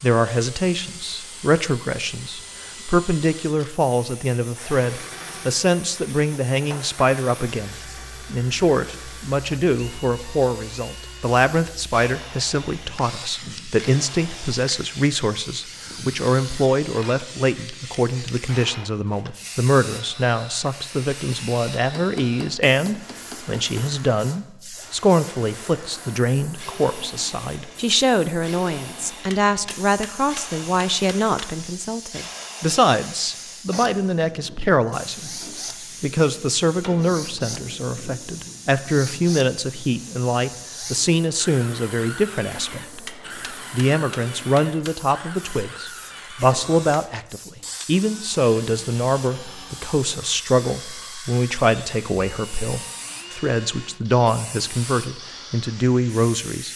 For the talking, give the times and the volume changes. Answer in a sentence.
You can hear the talking from 0.0 to 56.7 s, at a steady volume.